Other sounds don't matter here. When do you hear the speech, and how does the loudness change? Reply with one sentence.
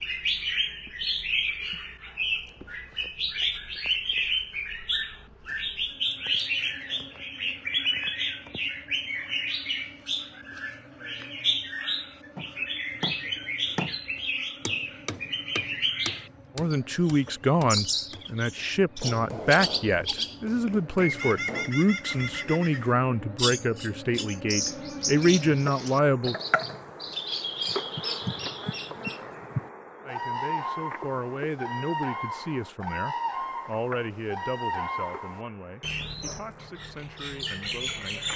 The speech can be heard from 16.6 to 26.4 s, at a steady volume; and from 30.0 to 38.3 s, getting quieter.